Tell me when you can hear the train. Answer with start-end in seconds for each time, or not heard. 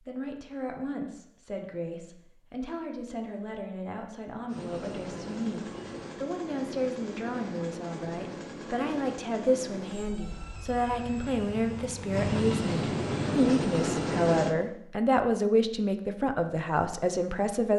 4.5-14.6.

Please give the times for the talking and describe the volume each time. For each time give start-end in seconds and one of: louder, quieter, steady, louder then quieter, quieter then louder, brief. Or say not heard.
0.1-17.7 louder.